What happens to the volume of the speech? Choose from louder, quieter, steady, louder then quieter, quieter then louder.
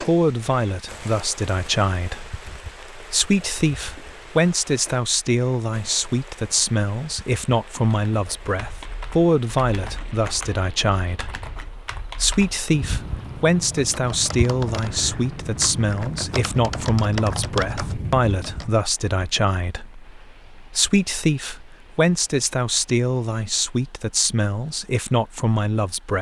steady.